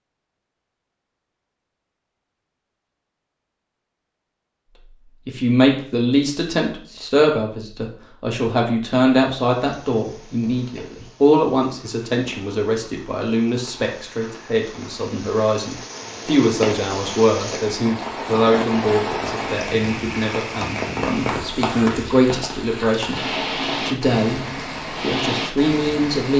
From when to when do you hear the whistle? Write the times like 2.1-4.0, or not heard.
not heard.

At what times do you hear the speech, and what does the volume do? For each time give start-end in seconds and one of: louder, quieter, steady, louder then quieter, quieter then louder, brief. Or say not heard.
5.2-26.3 steady.